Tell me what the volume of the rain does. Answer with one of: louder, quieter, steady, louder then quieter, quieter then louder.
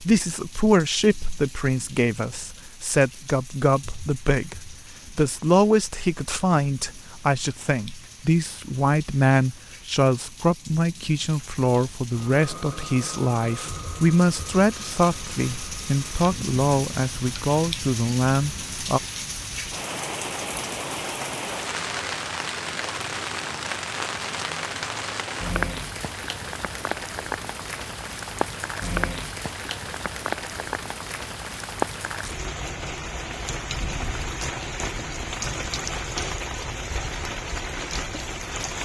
louder.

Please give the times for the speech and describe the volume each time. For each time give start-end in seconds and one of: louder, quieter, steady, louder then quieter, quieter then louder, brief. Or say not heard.
0.0-19.0 steady.